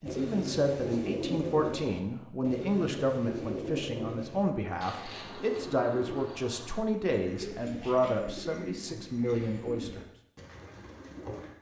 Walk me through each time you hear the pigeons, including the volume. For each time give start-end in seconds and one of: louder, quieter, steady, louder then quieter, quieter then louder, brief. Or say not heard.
0.1-11.5 quieter.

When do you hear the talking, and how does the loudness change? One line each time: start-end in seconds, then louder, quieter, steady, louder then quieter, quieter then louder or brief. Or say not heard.
0.0-10.1 steady.